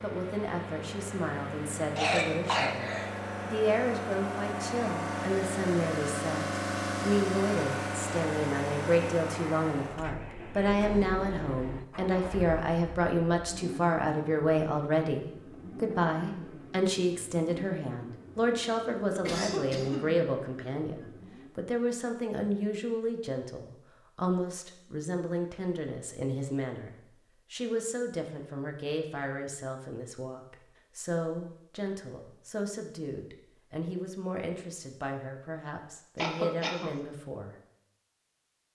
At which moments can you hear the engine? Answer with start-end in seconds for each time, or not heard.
0.0-21.6.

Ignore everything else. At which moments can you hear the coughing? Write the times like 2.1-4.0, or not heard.
1.9-3.1, 19.1-20.1, 36.1-37.0.